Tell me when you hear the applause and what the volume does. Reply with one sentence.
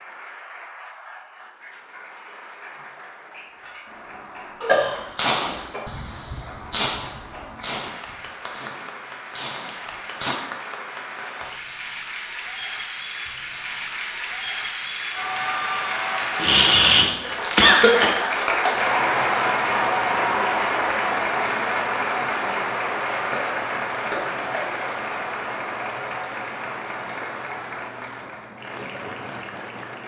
You can hear the applause from 0.0 to 30.0 s, getting louder then quieter.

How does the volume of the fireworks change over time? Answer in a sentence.
The loudness of the fireworks goes down, then up.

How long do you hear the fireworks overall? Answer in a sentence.
The fireworks can be heard for 6 seconds in total.